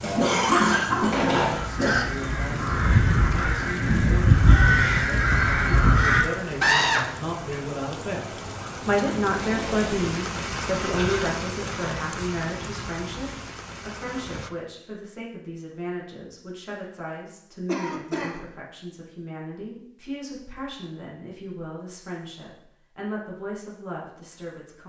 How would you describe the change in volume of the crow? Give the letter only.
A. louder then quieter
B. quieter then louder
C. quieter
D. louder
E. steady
D.